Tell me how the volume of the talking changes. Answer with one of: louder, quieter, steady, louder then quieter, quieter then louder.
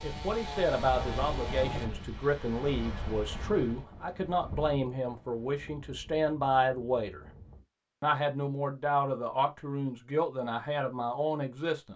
steady.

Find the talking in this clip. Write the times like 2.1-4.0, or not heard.
0.0-7.2, 8.0-11.9.